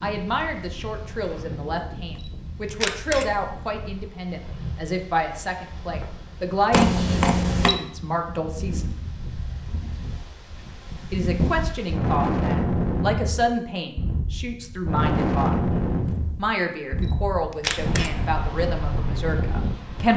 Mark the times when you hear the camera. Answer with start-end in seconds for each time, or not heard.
2.2-3.2, 6.7-7.8, 17.0-18.1.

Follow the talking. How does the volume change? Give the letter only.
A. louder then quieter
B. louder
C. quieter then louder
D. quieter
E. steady
E.